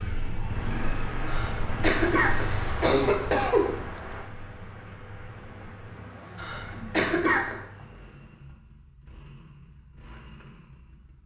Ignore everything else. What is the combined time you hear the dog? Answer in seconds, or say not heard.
not heard.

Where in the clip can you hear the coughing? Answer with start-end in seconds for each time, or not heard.
1.2-3.8, 6.3-7.5.